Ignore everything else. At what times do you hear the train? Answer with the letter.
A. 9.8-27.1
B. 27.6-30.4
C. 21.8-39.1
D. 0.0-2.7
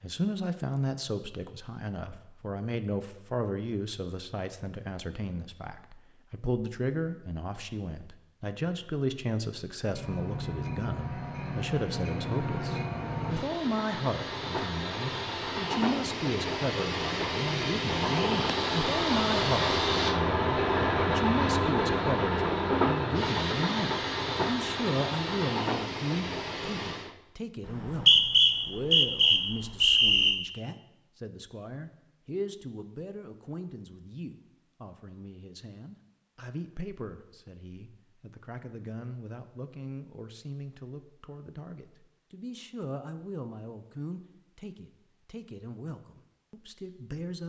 A.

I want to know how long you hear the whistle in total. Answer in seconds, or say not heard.
3 s.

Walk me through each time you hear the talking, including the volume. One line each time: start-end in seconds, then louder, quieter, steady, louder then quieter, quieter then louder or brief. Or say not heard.
0.0-47.4 quieter.